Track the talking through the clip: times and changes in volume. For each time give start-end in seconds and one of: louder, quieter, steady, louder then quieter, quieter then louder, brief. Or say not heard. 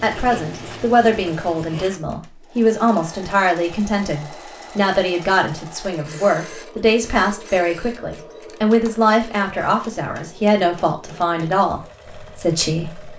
0.0-13.1 steady.